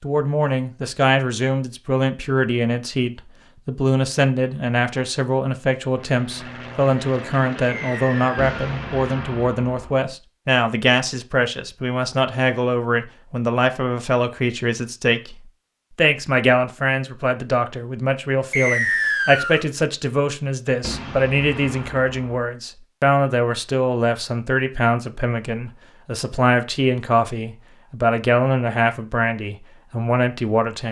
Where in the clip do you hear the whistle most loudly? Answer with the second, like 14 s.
19 s.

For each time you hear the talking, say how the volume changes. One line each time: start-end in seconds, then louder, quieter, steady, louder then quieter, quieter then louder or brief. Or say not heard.
0.0-30.8 steady.